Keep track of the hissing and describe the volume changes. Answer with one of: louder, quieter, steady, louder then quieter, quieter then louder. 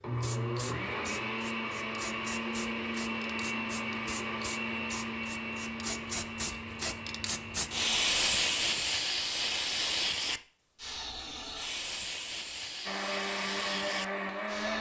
louder then quieter.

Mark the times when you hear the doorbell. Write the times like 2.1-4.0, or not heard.
not heard.